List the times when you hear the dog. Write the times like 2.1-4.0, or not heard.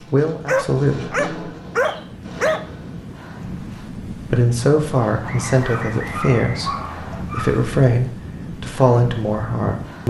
0.5-2.6, 5.5-7.6.